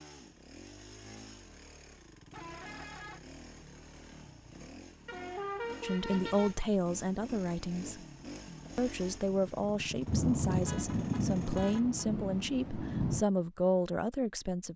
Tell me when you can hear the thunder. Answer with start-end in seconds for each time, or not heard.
10.1-13.2.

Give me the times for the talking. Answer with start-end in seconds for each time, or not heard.
5.8-8.0, 8.8-14.7.